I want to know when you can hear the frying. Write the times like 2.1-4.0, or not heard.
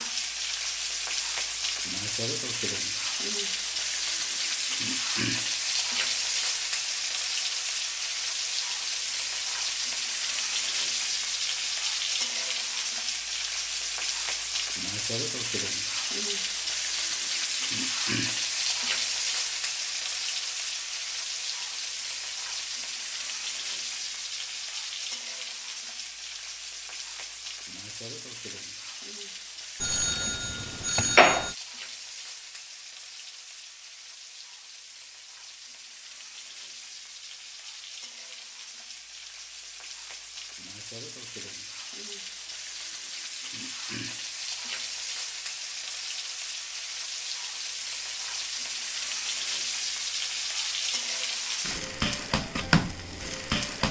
0.0-53.8.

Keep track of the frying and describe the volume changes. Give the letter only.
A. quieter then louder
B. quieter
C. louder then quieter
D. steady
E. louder
A.